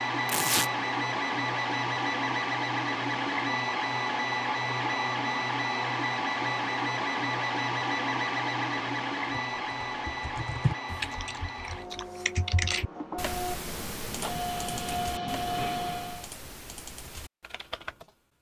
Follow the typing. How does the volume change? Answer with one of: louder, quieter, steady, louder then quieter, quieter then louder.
quieter.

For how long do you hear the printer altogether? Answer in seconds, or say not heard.
16 s.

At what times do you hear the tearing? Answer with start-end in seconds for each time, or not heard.
0.2-0.7.